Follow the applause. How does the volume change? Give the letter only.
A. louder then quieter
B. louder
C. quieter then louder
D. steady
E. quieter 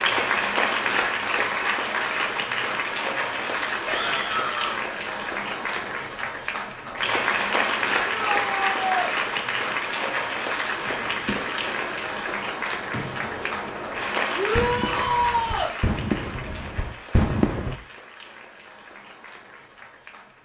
E.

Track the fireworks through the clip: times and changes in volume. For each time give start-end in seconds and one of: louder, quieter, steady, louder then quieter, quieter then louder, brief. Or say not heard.
10.8-17.8 louder.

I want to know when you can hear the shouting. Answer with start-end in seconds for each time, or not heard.
3.9-4.8, 8.1-9.1, 14.3-15.8.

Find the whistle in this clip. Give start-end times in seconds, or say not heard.
not heard.